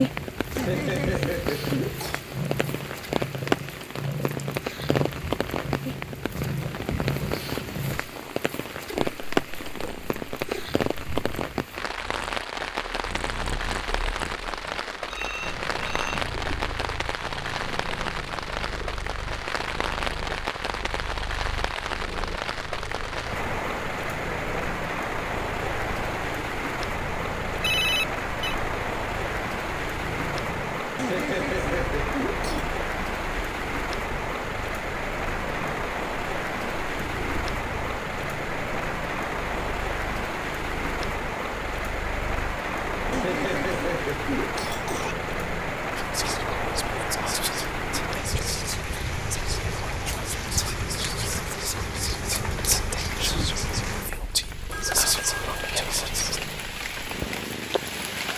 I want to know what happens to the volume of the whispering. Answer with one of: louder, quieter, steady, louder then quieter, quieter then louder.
louder.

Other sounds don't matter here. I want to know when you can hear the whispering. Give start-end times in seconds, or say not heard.
46.0-56.4.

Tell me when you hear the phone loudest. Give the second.
28 s.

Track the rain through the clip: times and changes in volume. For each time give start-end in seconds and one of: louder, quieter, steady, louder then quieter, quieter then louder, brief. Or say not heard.
0.0-58.3 steady.